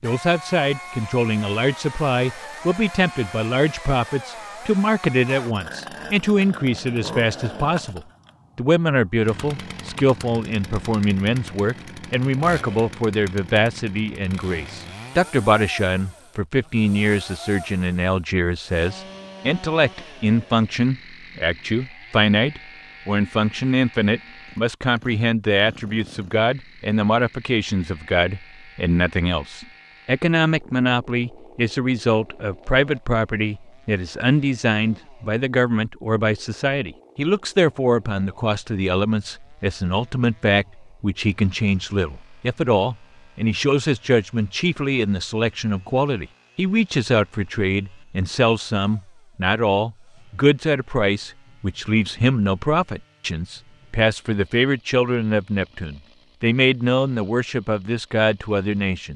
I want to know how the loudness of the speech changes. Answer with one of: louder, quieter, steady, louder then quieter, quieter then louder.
steady.